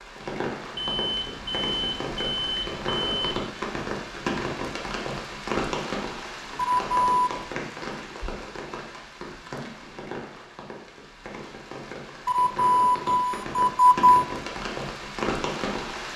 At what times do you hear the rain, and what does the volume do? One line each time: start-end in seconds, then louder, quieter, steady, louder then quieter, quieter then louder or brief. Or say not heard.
0.0-16.1 quieter then louder.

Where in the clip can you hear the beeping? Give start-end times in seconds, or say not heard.
0.7-3.5, 6.5-7.3, 12.2-14.2.